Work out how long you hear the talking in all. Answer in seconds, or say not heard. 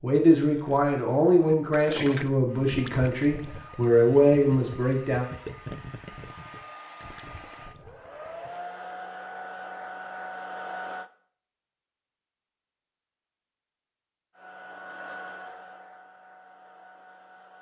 5 s.